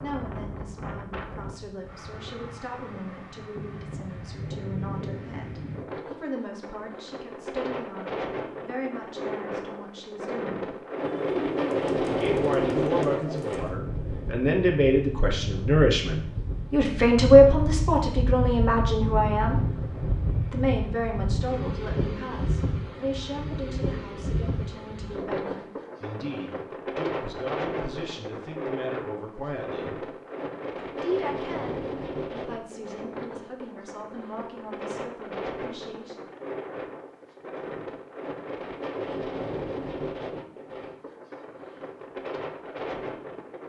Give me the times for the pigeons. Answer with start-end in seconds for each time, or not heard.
11.0-13.8.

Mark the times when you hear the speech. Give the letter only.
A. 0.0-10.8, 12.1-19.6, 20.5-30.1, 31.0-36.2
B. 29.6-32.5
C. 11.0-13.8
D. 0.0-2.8
A.